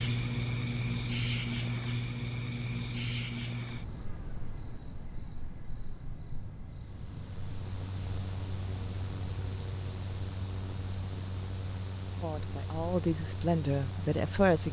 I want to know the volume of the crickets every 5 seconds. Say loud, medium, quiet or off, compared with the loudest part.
loud, quiet, quiet.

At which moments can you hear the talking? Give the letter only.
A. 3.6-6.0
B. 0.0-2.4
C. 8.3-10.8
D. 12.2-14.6
D.